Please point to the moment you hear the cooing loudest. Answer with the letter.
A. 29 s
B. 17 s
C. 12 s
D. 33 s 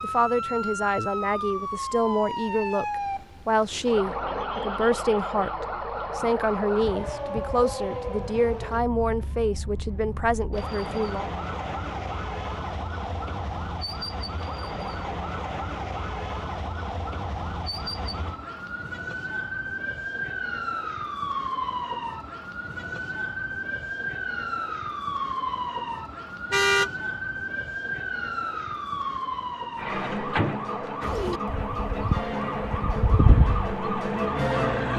D.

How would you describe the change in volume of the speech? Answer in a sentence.
The volume of the speech stays about the same.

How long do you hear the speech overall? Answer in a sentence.
The speech can be heard for 11 seconds in total.